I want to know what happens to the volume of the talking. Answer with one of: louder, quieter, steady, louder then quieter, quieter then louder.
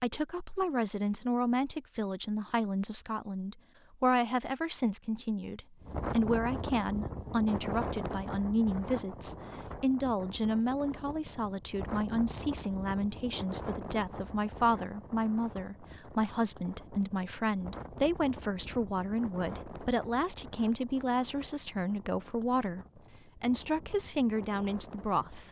steady.